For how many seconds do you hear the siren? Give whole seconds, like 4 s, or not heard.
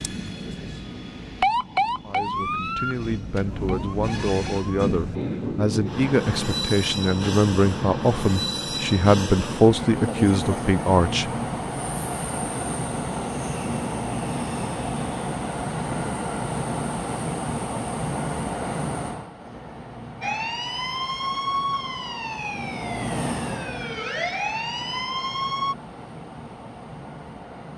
10 s.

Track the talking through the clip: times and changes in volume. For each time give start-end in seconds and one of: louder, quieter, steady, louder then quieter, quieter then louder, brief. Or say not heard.
2.0-11.3 louder.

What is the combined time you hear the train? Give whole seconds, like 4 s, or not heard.
28 s.